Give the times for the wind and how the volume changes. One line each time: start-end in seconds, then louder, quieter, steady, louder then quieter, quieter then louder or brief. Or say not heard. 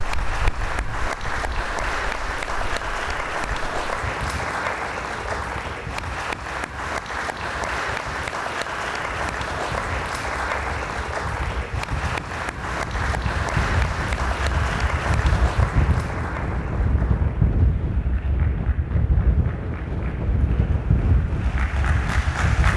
0.0-22.7 louder.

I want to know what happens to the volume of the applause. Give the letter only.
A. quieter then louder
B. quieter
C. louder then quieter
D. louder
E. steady
B.